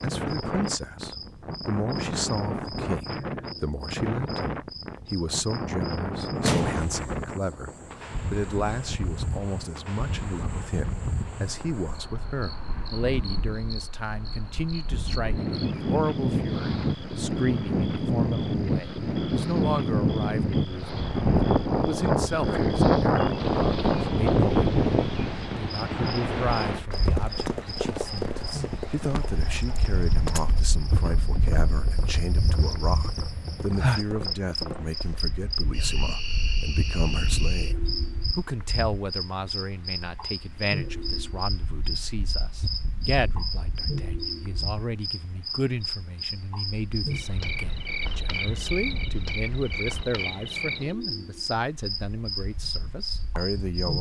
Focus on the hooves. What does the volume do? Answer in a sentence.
The loudness of the hooves goes down.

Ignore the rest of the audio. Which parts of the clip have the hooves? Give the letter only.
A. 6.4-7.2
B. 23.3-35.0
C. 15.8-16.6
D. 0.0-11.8
B.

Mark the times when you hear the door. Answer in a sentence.
The door can be heard from 6.4 to 7.2 s.